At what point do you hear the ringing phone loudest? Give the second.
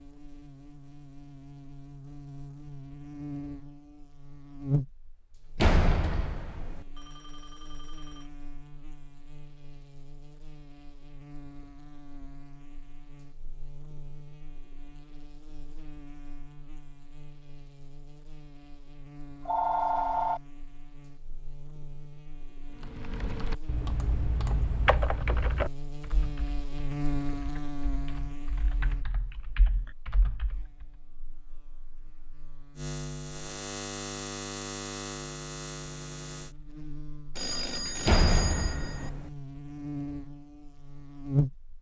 20 s.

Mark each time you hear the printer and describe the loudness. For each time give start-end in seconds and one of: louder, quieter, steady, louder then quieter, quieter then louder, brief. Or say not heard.
not heard.